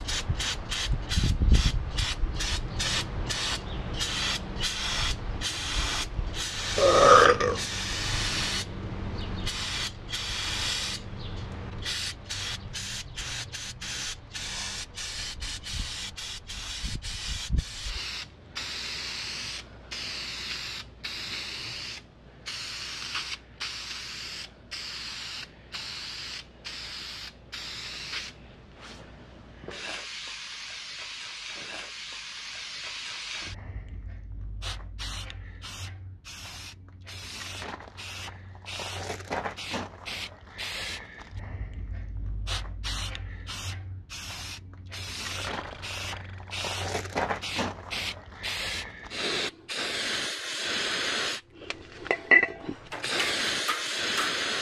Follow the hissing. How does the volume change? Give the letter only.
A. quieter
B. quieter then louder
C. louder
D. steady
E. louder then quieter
B.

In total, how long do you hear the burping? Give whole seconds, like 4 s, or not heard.
2 s.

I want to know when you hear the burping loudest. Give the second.
7 s.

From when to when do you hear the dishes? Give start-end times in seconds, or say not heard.
52.9-54.5.